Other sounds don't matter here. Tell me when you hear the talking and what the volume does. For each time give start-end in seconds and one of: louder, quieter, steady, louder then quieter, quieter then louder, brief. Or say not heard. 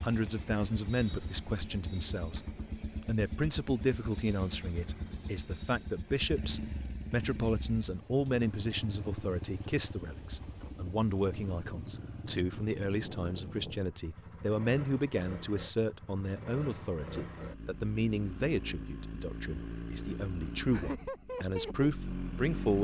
0.0-2.5 brief
3.0-22.7 steady.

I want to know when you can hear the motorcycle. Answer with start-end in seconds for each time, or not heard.
0.0-22.7.